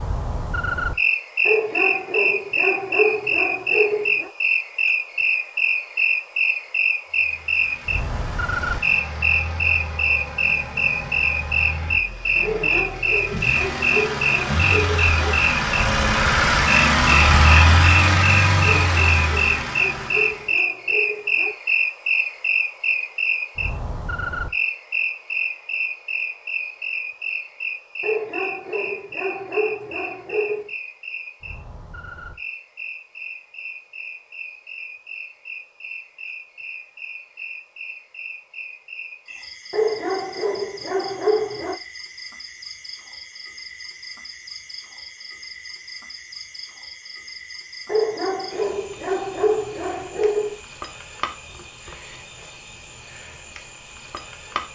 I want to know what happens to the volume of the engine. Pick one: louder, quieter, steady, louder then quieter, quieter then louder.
louder.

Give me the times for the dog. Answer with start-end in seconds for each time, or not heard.
1.4-4.3, 12.4-15.4, 18.8-21.6, 28.0-30.7, 39.7-41.8, 47.9-50.6.